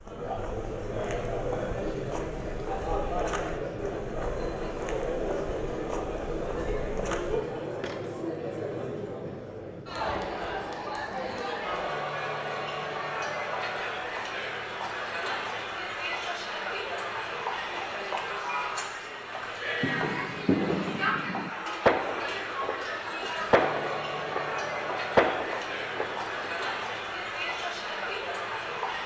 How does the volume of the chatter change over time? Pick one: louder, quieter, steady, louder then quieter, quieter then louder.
steady.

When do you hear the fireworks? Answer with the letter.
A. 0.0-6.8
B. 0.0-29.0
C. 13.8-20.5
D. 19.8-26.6
D.